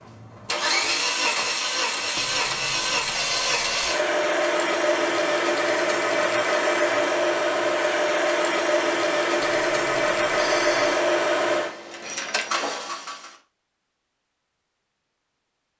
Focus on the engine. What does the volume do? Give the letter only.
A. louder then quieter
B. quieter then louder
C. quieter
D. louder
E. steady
E.